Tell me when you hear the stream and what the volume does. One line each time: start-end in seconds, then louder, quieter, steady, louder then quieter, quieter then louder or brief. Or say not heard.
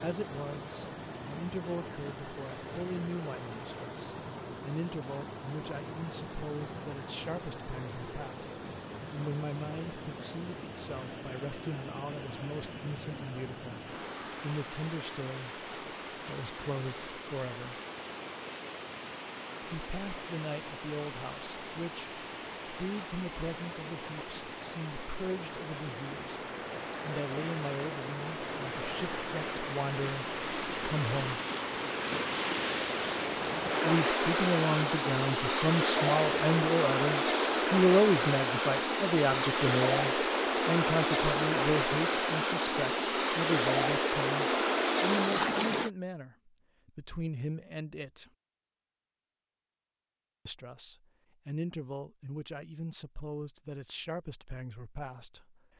0.0-45.9 louder.